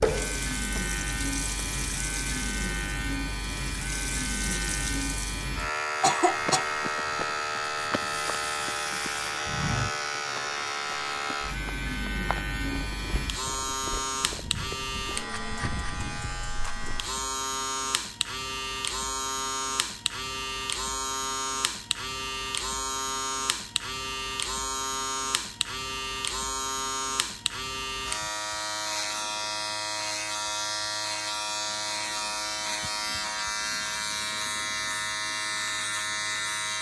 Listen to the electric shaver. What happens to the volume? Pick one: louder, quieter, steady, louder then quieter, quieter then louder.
steady.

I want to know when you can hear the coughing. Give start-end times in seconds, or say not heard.
6.0-6.7.